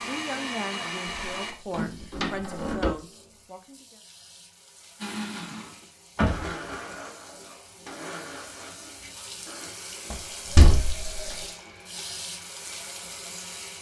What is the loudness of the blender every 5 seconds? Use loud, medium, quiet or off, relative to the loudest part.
loud, medium, quiet.